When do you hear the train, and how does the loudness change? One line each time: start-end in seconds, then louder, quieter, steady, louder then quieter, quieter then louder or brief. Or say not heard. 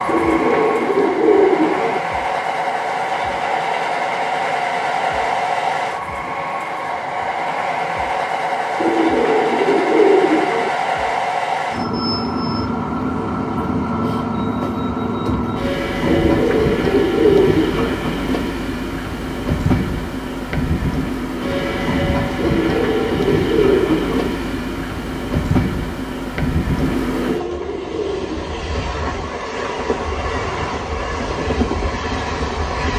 0.0-32.9 steady.